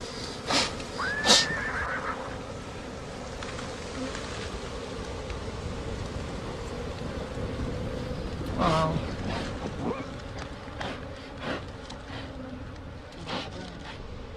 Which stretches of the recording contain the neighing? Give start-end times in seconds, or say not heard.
0.9-2.4, 8.8-10.1.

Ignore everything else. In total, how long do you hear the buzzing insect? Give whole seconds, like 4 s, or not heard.
14 s.